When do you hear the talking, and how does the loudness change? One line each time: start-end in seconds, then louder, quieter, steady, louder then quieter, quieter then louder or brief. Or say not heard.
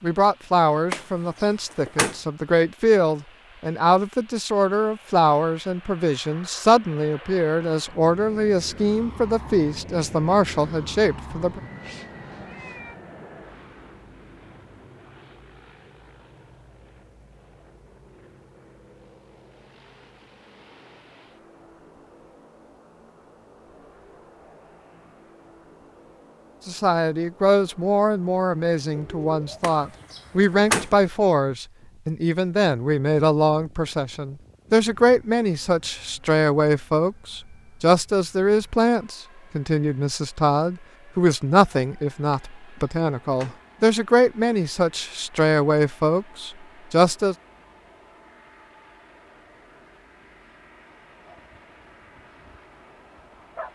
0.0-11.6 steady
26.6-47.4 steady.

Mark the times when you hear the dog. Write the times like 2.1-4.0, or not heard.
51.2-53.7.